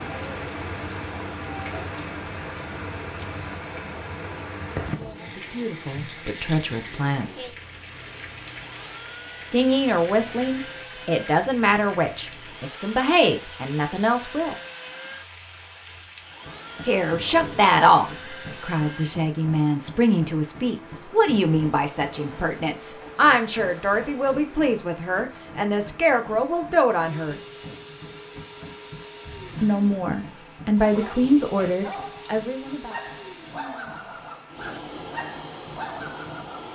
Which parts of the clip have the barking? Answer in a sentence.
The barking can be heard from 29.2 to 29.9 s and from 30.9 to 36.6 s.